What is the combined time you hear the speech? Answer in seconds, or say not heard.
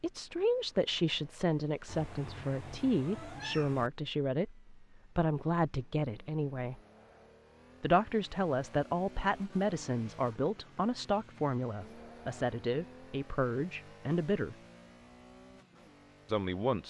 14 s.